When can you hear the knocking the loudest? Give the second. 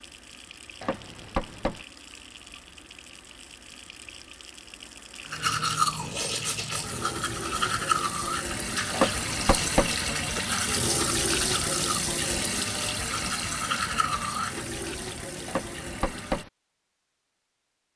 9 s.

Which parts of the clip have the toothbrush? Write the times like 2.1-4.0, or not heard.
5.2-14.7.